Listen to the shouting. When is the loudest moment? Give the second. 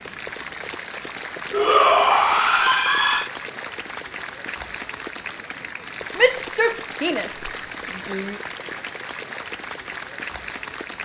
2 s.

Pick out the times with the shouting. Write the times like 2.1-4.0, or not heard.
1.5-3.3, 6.2-8.3.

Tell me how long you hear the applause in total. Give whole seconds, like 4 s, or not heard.
11 s.